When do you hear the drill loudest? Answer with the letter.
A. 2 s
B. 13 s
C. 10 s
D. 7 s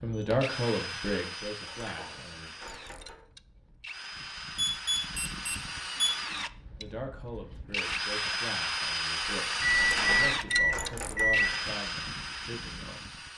C.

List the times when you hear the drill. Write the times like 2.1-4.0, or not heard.
0.0-13.3.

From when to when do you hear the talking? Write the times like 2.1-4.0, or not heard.
0.0-2.5, 6.8-13.2.